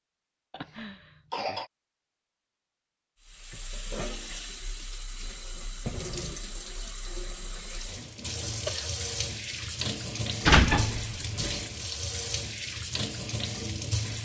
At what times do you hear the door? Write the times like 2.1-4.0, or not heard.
10.4-11.6.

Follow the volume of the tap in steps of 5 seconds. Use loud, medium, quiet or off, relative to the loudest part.
medium, loud, loud.